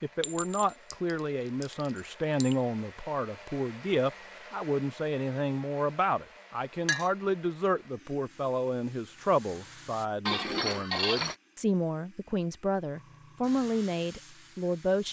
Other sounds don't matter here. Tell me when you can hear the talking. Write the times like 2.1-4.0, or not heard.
0.0-15.0.